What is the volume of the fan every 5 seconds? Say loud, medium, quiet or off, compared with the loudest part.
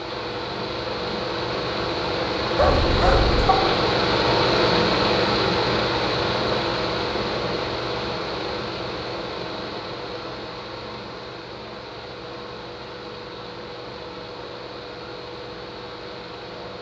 loud, loud, quiet, quiet.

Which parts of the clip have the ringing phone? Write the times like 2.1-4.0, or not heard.
2.5-3.6.